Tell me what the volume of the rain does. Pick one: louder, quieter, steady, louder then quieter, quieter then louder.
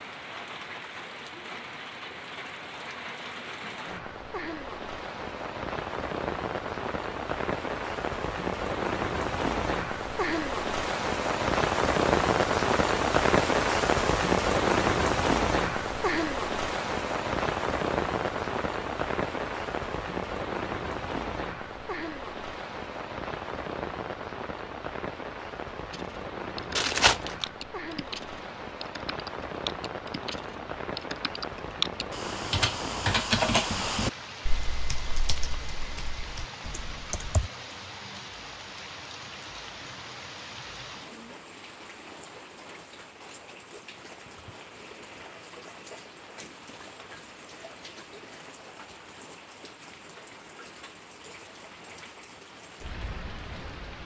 louder then quieter.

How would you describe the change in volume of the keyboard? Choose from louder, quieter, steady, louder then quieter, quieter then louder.
louder then quieter.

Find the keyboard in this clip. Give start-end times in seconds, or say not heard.
25.9-37.5.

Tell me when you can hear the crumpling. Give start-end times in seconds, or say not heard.
26.8-27.4.